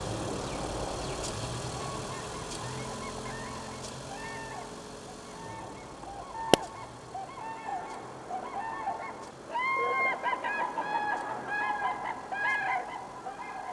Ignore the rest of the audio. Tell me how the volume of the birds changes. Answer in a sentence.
The volume of the birds goes up.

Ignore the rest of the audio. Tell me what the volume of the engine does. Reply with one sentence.
The volume of the engine goes down.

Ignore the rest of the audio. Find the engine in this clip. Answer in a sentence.
You can hear the engine from 0.0 to 13.6 s.